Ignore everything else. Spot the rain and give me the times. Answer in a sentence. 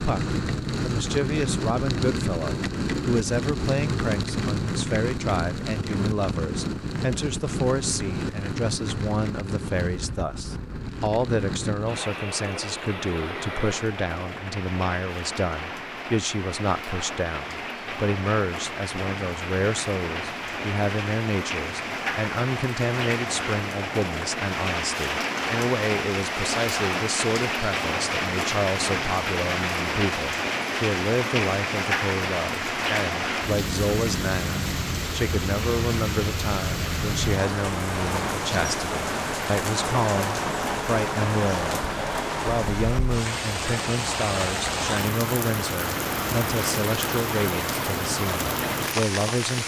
The rain can be heard from 0.0 to 49.6 s.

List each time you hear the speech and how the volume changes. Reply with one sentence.
The speech can be heard from 0.0 to 41.8 s, at a steady volume; and from 42.4 to 49.6 s, at a steady volume.